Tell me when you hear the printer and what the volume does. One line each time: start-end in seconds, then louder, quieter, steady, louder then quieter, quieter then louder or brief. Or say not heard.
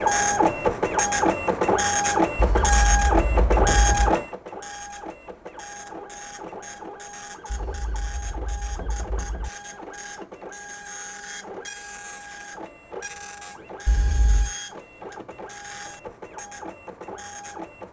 0.0-17.8 quieter.